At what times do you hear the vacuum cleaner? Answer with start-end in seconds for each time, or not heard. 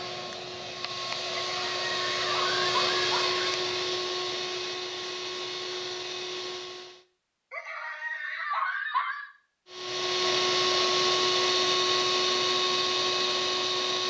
0.0-7.0, 9.7-14.0.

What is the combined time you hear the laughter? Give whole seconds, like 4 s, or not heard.
4 s.